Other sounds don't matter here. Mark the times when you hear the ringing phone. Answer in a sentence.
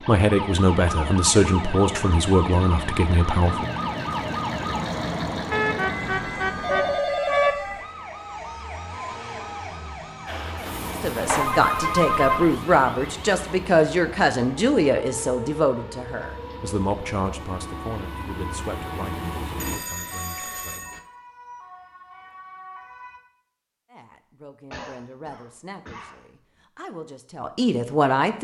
The ringing phone can be heard from 5.5 to 7.5 s, from 11.2 to 12.6 s and from 19.6 to 21.0 s.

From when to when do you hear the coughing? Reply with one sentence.
You can hear the coughing from 24.7 to 26.6 s.